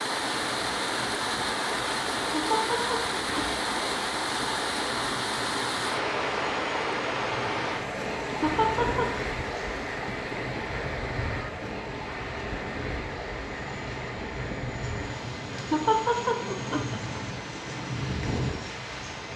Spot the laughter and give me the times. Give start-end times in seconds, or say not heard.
2.3-3.6, 8.4-9.1, 15.7-17.2.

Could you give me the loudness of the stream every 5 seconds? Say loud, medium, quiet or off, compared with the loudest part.
loud, loud, medium, medium.